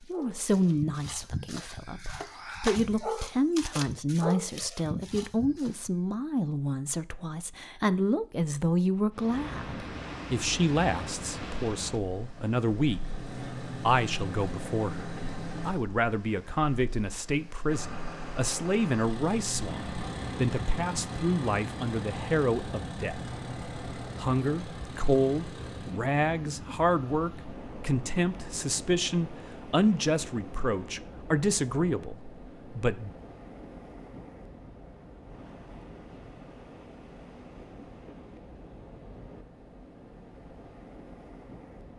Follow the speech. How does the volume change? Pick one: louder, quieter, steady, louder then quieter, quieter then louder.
steady.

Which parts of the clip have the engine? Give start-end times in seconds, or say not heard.
11.9-15.8, 17.6-25.9.